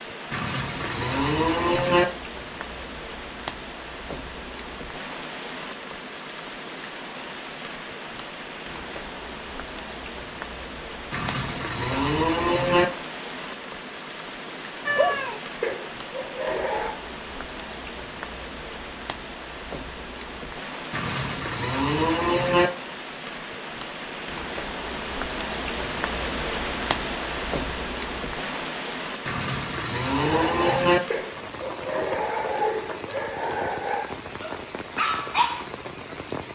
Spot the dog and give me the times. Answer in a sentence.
You can hear the dog from 14.9 to 16.9 s and from 30.1 to 35.6 s.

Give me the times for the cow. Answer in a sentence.
The cow can be heard from 0.3 to 2.0 s, from 11.1 to 12.8 s, from 20.9 to 22.7 s and from 29.2 to 31.0 s.